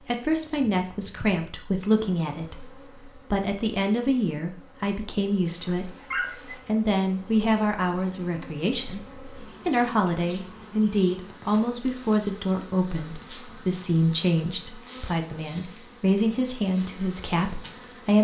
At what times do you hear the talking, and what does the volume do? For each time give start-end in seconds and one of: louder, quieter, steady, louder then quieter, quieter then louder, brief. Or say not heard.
0.1-18.1 steady.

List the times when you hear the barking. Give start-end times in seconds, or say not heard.
5.5-6.6.